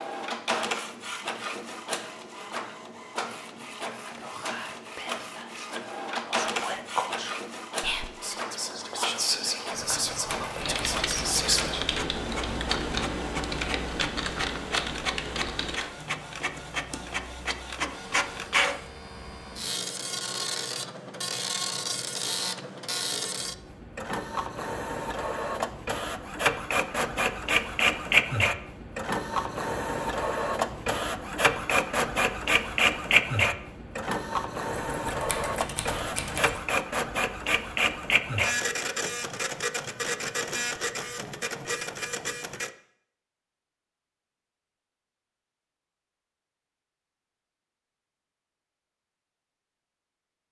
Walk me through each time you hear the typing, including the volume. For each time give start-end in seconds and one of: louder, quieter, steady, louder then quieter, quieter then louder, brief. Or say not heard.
10.6-17.1 quieter.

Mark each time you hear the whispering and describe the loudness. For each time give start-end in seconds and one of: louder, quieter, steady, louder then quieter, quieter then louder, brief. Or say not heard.
4.0-11.8 louder.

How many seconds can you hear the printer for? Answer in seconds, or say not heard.
43 s.